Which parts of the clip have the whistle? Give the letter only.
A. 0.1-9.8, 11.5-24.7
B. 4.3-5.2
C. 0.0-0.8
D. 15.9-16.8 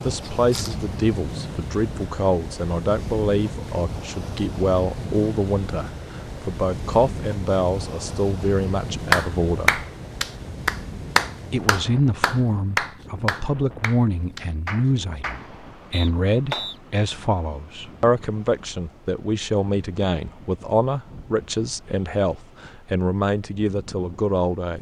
D.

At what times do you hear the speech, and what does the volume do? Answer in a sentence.
You can hear the speech from 0.1 to 9.8 s, at a steady volume; and from 11.5 to 24.7 s, at a steady volume.